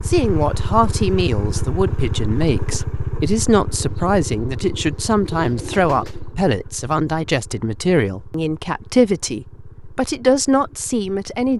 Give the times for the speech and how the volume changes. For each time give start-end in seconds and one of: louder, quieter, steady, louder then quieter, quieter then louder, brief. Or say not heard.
0.1-11.5 steady.